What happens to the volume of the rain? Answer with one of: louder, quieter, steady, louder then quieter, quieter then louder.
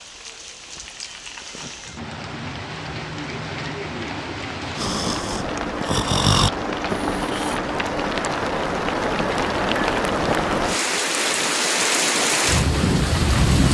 louder.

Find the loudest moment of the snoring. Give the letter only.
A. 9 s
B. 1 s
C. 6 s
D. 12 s
C.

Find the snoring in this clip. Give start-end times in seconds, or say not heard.
4.8-7.6.